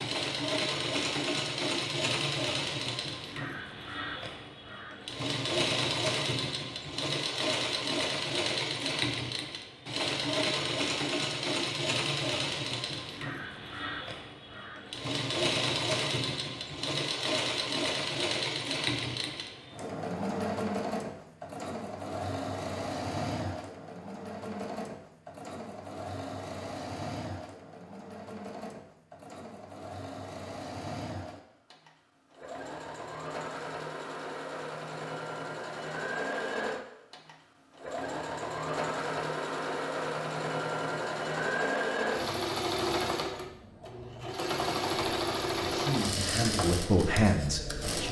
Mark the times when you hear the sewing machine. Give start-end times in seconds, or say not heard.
0.0-48.0.